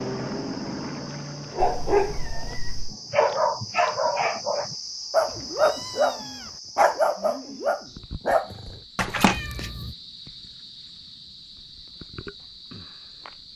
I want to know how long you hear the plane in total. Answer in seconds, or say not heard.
2 s.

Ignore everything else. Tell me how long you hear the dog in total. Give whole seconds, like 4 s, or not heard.
8 s.